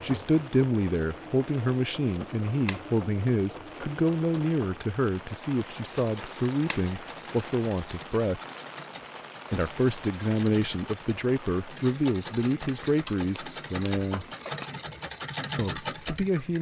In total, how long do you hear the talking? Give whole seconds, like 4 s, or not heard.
14 s.